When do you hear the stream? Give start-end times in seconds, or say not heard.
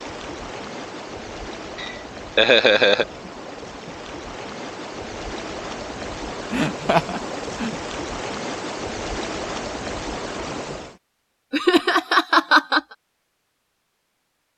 0.0-11.0.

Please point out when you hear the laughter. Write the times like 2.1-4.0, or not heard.
1.8-3.0, 6.5-7.7, 11.5-12.8.